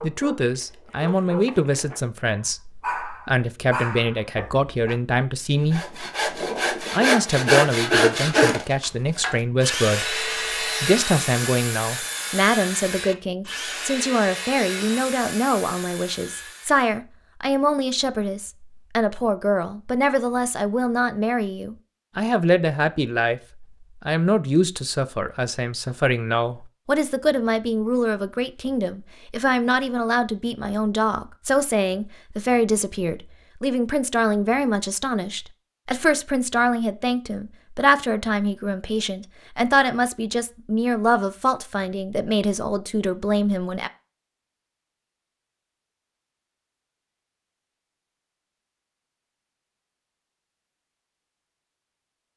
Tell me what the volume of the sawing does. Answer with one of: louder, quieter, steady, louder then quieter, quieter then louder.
quieter.